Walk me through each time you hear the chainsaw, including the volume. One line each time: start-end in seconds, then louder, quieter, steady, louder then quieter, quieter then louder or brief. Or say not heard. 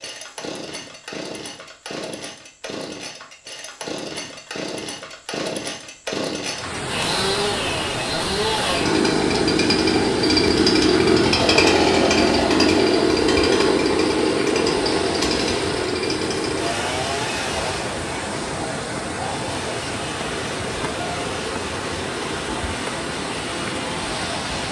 0.0-24.6 louder then quieter.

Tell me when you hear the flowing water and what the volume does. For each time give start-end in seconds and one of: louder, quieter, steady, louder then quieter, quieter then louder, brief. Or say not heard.
6.5-24.6 steady.